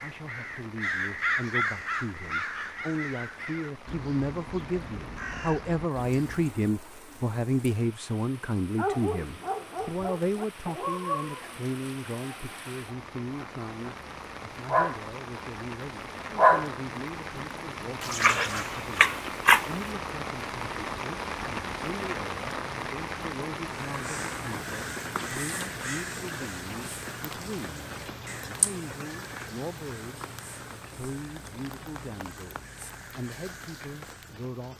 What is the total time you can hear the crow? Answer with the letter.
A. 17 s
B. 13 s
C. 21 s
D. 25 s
A.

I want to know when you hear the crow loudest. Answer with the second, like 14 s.
1 s.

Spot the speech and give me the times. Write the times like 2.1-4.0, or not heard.
0.0-34.7.